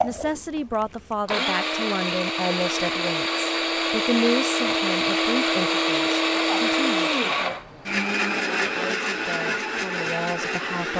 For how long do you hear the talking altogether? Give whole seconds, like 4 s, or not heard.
11 s.